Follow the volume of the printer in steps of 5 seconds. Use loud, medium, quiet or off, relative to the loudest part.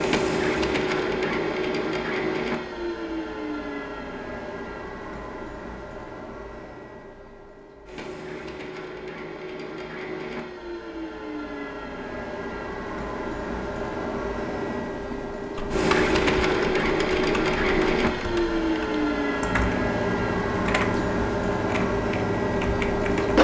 loud, quiet, medium, loud, loud.